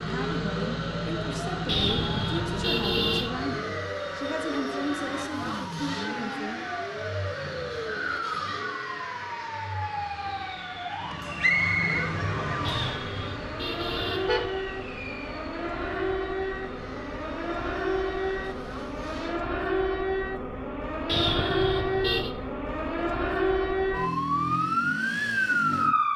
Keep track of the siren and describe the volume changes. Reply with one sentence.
The loudness of the siren goes up.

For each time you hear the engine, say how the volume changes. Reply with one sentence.
You can hear the engine from 0.0 to 19.4 s, getting quieter.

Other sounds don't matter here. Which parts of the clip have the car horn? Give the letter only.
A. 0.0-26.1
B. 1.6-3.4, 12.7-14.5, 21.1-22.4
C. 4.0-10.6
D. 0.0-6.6
B.